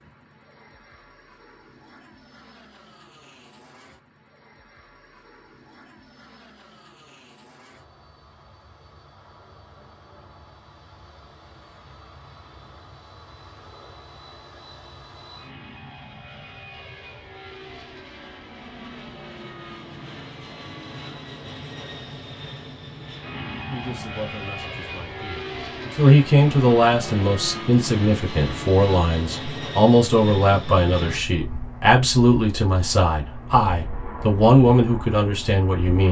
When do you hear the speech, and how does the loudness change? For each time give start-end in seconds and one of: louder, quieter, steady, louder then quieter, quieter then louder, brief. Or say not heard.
23.7-36.0 steady.